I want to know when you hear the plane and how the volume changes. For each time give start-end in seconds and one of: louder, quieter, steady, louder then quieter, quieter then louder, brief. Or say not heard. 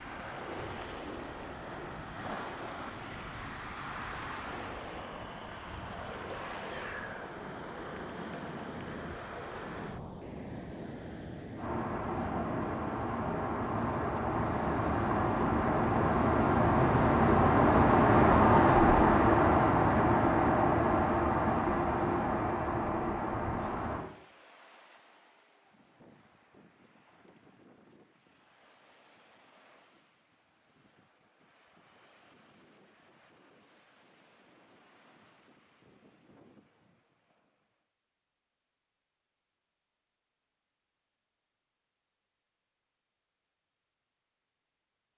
11.6-24.1 louder then quieter.